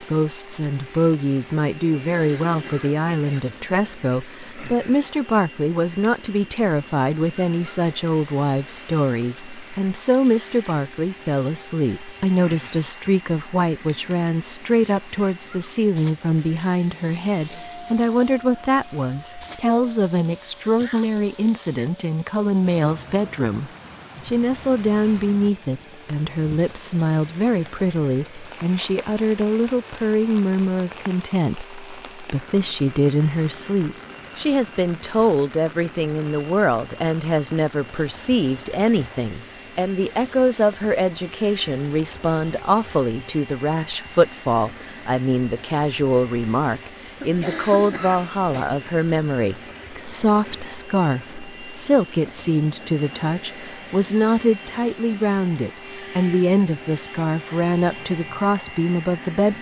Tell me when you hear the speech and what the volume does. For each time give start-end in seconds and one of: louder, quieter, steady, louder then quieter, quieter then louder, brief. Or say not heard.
0.1-59.5 steady.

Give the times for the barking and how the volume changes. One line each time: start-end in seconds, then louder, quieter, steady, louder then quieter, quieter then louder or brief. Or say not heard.
not heard.